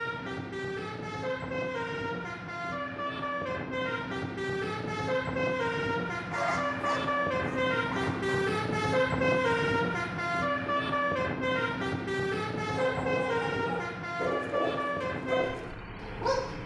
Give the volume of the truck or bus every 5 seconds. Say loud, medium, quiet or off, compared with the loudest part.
medium, loud, loud, medium.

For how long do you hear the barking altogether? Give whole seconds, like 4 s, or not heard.
6 s.